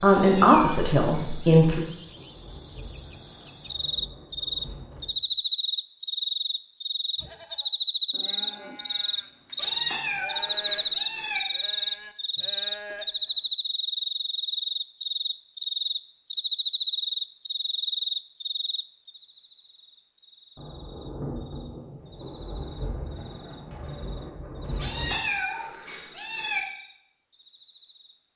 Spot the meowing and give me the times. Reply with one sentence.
The meowing can be heard from 0.1 to 1.6 s, from 9.6 to 11.4 s and from 24.8 to 26.6 s.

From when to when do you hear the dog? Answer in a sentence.
The dog can't be heard in this clip.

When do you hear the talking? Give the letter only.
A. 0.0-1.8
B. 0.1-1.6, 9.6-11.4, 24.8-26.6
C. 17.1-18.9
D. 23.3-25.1
A.